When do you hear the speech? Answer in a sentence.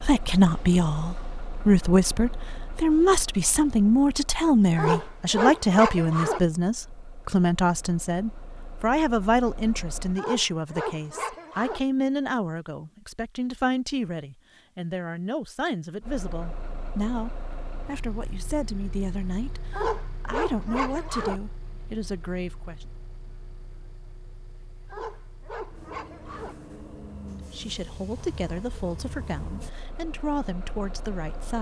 You can hear the speech from 0.0 to 22.9 s and from 27.4 to 31.5 s.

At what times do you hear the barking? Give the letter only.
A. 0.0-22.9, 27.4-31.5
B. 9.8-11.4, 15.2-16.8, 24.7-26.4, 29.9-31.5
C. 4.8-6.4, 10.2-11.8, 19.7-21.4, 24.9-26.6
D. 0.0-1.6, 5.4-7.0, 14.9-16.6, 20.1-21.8
C.